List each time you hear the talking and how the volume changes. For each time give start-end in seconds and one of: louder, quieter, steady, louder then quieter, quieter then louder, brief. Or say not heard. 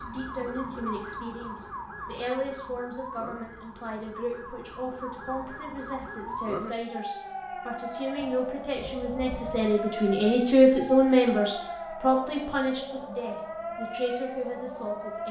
0.0-15.2 louder then quieter.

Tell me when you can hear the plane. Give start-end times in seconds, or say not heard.
not heard.